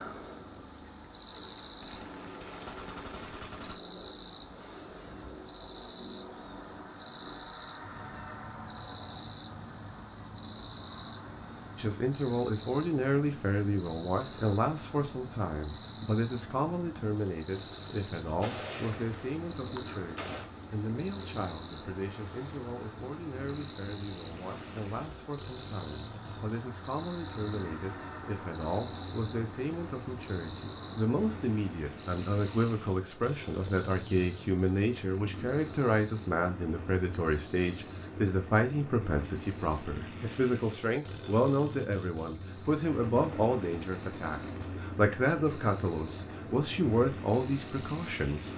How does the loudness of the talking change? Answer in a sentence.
The loudness of the talking goes down, then up.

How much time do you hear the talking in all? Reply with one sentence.
The talking can be heard for 37 seconds in total.